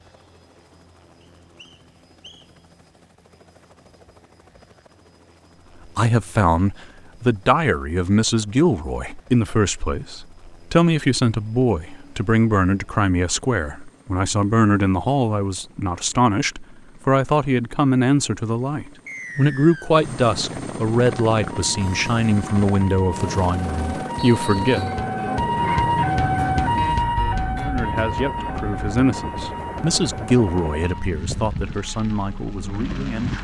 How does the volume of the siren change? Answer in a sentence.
The volume of the siren goes up, then down.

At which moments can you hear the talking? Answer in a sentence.
The talking can be heard from 6.0 to 24.9 s and from 27.6 to 33.3 s.